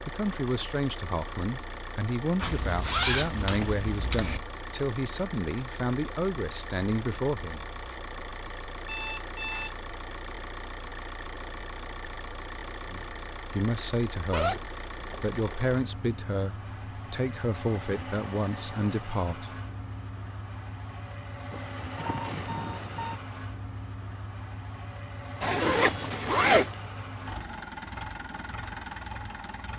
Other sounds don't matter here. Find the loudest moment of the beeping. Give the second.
9 s.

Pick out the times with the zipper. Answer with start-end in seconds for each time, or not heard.
2.4-4.4, 14.3-15.8, 25.4-26.8.